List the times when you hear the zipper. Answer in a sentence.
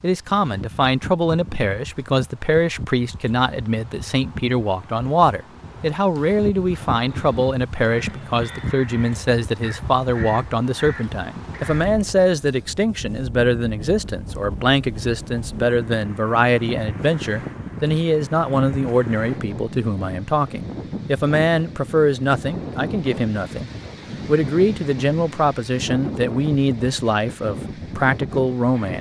The zipper can't be heard in this clip.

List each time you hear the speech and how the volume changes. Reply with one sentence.
You can hear the speech from 0.0 to 28.9 s, at a steady volume.